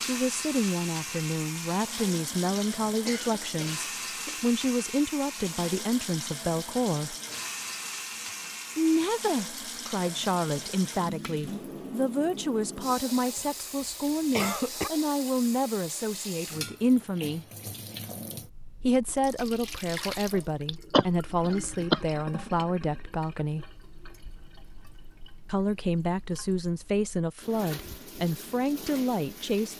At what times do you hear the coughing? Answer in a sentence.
The coughing can be heard from 3.0 to 4.5 s, from 13.3 to 14.9 s and from 20.6 to 22.0 s.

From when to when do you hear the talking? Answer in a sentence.
You can hear the talking from 0.0 to 7.2 s, from 8.8 to 17.4 s, from 18.8 to 23.6 s and from 25.4 to 29.7 s.